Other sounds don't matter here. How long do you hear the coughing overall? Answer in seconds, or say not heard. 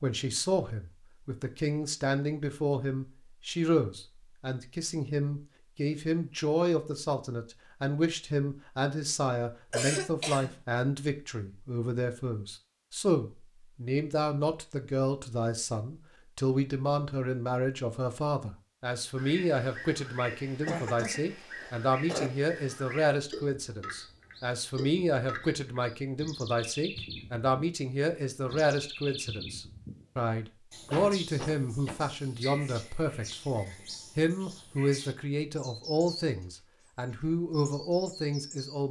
4 s.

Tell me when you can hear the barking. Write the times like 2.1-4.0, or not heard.
not heard.